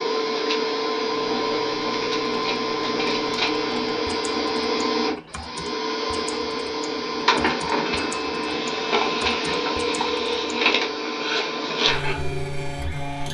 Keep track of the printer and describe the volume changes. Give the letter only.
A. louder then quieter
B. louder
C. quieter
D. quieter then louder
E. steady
E.